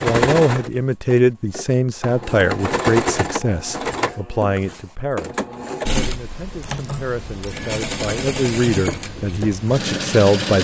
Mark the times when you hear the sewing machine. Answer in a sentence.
You can hear the sewing machine from 0.0 to 10.5 s.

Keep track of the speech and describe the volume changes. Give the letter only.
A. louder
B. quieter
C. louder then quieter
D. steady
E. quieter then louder
E.